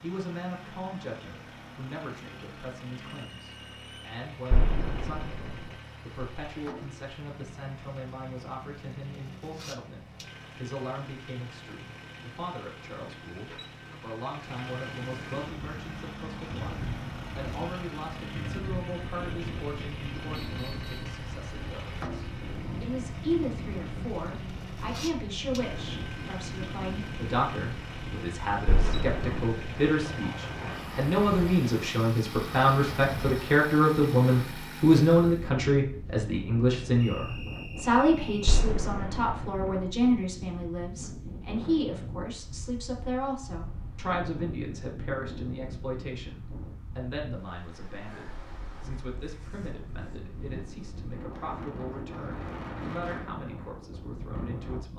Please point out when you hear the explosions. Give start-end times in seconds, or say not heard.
4.5-5.7, 28.6-29.9, 38.5-39.6.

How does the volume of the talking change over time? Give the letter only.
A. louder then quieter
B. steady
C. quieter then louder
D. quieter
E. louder
A.